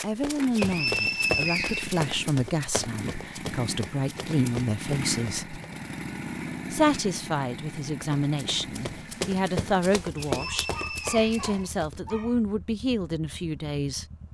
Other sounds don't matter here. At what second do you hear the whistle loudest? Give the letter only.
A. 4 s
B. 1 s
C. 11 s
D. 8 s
B.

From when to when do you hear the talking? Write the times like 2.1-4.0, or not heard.
0.0-5.6, 6.7-14.1.